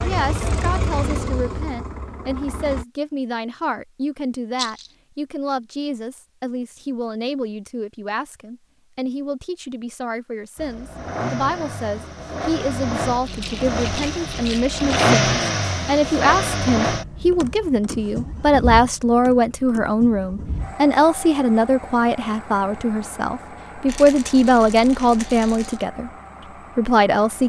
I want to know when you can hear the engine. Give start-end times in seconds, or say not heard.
0.0-2.9, 10.6-27.4.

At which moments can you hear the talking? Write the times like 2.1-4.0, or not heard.
0.0-26.1, 26.8-27.4.